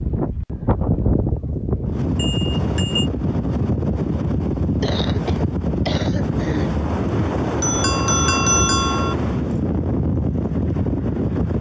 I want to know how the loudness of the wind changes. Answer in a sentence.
The volume of the wind stays about the same.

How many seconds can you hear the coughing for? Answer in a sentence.
The coughing can be heard for 2 seconds in total.